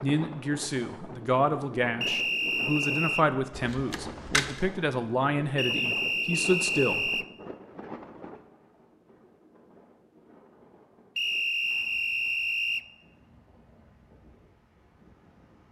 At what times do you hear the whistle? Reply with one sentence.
The whistle can be heard from 2.0 to 3.2 s, from 5.5 to 7.2 s and from 11.2 to 12.8 s.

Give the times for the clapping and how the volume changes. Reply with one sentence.
The clapping can't be heard in this clip.